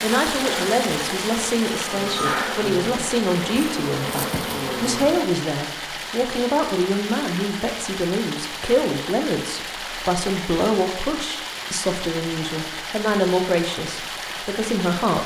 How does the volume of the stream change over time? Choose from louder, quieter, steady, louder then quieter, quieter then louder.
steady.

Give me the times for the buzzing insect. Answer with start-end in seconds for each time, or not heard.
0.2-5.3.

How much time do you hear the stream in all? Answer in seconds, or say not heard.
15 s.